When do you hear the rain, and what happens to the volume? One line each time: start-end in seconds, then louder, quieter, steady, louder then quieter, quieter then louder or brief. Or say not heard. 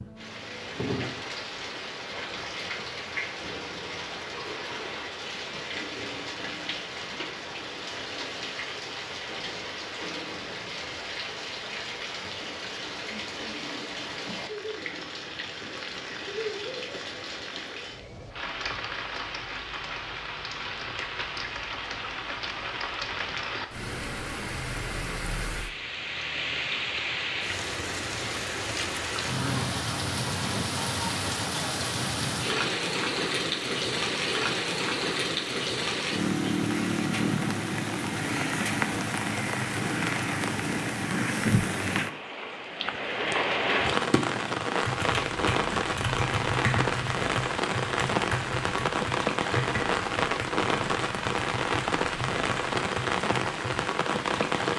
0.0-54.7 louder.